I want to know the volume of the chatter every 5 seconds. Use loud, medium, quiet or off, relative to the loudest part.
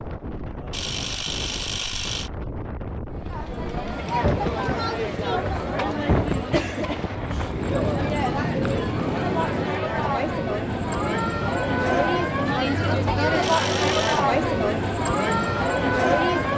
medium, medium, loud, loud.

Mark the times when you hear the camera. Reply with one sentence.
The camera can be heard from 0.7 to 2.3 s and from 13.4 to 14.2 s.